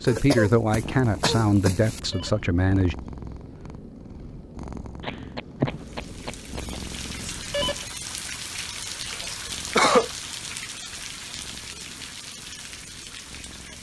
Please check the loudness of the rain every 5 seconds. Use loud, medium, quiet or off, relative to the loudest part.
off, loud, loud.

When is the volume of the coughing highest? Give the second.
10 s.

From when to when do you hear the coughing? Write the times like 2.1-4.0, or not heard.
0.1-2.0, 5.0-6.8, 9.2-10.1.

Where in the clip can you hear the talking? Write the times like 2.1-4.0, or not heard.
0.0-3.0.